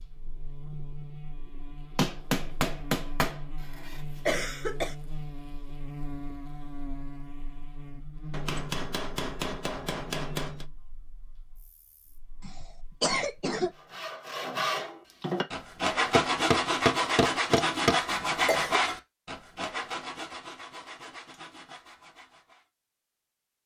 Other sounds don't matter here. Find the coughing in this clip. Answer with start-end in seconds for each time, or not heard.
4.2-5.0, 12.4-13.7, 18.1-18.8.